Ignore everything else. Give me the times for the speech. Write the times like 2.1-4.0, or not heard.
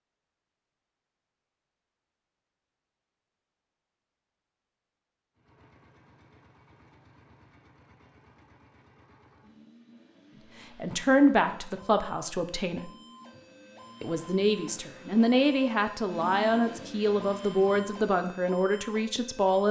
10.8-12.9, 14.0-19.6.